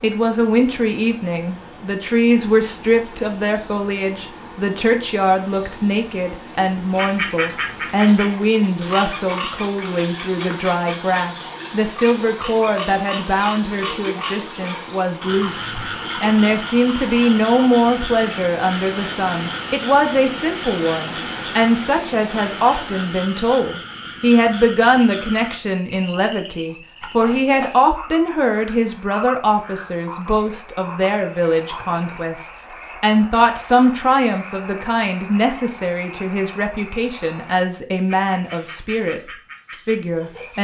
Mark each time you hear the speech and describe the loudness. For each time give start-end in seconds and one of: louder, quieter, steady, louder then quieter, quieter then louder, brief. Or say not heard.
0.0-39.2 steady
39.9-40.5 brief.